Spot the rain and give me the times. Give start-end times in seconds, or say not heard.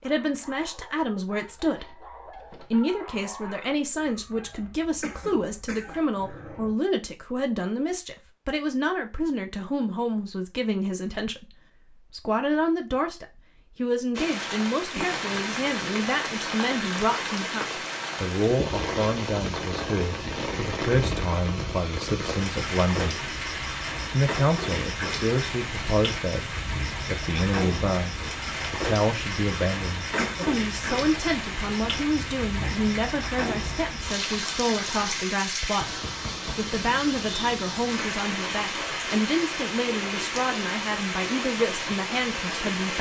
14.2-42.9.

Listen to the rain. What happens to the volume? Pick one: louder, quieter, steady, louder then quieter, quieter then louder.
steady.